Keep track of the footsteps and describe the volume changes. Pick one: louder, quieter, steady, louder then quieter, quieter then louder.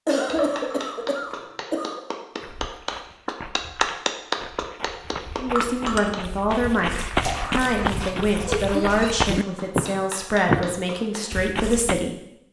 louder.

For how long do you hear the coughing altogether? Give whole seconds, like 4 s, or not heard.
4 s.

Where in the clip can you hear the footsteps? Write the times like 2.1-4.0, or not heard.
2.4-12.1.